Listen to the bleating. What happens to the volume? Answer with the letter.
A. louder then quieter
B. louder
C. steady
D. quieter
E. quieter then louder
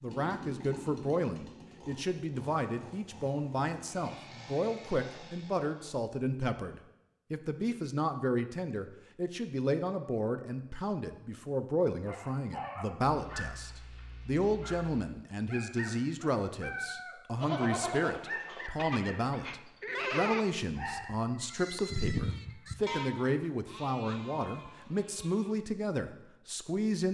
A.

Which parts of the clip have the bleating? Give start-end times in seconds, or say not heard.
17.4-25.6.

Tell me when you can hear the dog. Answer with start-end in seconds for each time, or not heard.
12.1-21.1.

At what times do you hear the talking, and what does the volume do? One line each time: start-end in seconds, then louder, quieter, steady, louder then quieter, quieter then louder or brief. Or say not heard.
0.0-27.0 steady.